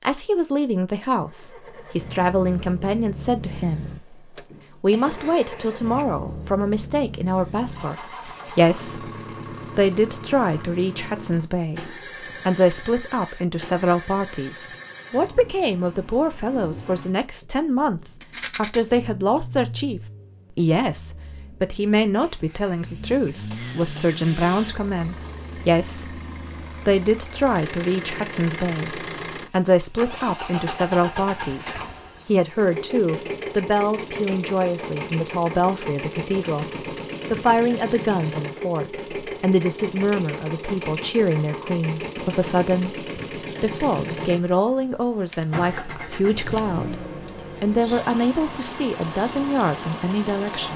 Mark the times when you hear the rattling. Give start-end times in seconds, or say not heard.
18.2-18.8.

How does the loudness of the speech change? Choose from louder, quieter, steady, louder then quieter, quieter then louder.
steady.